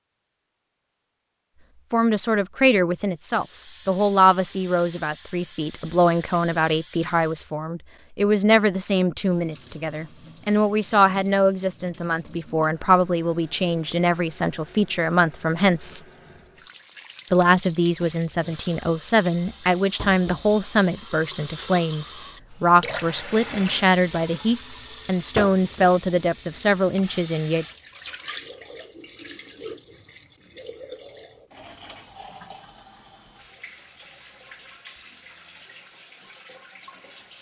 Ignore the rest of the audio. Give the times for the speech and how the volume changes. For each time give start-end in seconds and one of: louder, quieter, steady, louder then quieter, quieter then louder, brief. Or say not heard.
1.9-16.0 steady
17.3-27.6 steady.